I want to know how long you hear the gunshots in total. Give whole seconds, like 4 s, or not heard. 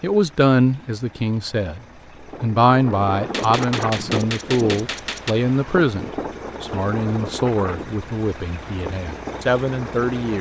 2 s.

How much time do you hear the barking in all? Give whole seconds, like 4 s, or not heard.
not heard.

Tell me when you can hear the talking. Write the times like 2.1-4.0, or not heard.
0.0-10.3.